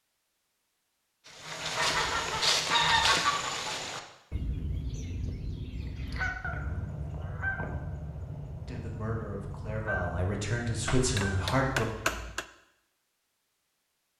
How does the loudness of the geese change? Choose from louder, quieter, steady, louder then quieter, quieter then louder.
quieter.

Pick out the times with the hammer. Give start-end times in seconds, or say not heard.
10.8-12.4.